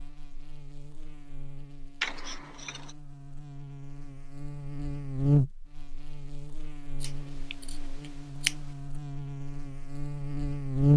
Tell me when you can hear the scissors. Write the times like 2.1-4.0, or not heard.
2.0-3.0, 7.0-8.6.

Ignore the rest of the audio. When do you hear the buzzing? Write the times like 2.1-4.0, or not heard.
0.0-10.9.